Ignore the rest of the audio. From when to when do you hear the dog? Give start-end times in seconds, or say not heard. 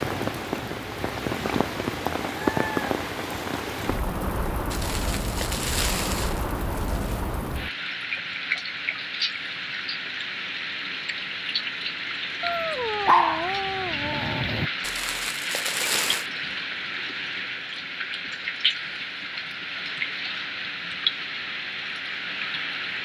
13.1-14.7.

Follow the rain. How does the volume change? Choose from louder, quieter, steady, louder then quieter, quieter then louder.
steady.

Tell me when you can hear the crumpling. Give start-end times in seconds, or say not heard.
4.7-7.2, 14.8-16.2.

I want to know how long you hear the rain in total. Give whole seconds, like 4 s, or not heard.
23 s.